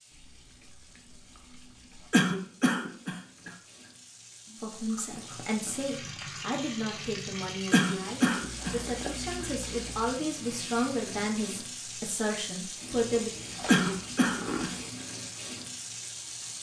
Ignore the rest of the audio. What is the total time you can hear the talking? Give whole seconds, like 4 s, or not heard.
9 s.